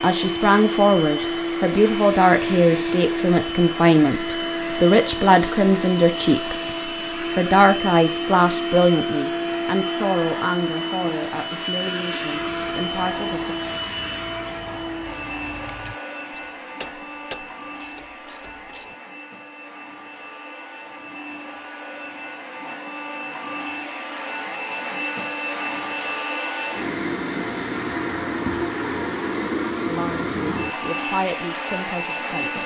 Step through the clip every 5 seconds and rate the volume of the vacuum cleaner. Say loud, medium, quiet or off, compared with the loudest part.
loud, loud, loud, medium, medium, loud, loud.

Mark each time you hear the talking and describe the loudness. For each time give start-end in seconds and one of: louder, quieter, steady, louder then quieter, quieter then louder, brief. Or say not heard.
0.0-6.7 steady
7.3-13.6 quieter
29.9-32.6 brief.